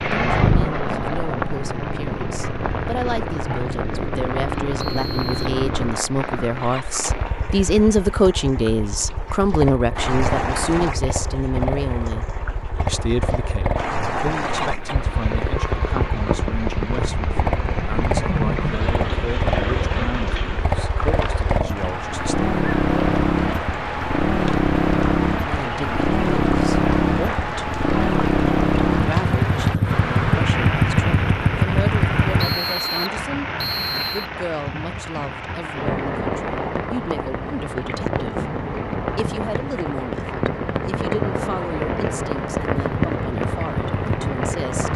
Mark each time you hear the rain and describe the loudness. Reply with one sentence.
You can hear the rain from 0.0 to 44.9 s, at a steady volume.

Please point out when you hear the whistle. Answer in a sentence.
The whistle can be heard from 4.8 to 5.3 s and from 32.4 to 34.3 s.